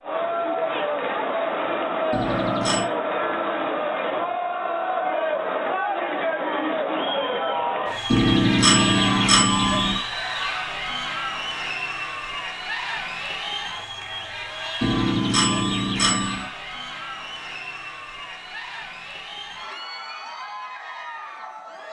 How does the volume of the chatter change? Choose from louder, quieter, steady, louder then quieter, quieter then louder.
quieter.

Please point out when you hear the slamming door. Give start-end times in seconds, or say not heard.
not heard.